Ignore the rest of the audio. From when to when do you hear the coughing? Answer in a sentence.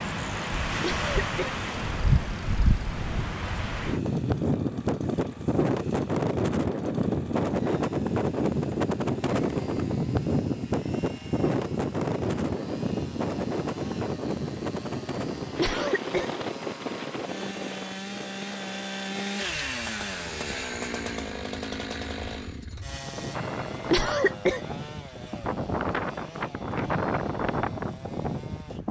The coughing can be heard from 0.8 to 1.6 s, from 15.6 to 16.3 s and from 23.9 to 24.6 s.